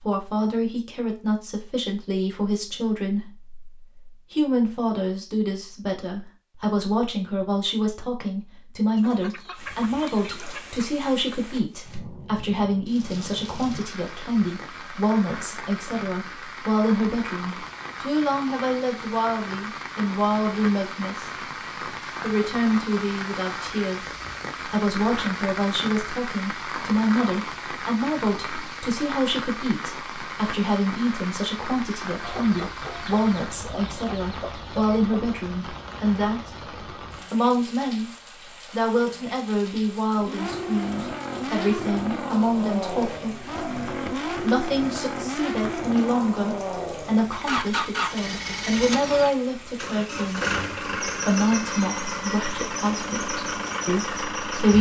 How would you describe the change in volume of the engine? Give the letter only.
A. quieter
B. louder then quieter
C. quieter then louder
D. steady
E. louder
D.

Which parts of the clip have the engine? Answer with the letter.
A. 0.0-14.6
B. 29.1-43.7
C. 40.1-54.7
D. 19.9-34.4
C.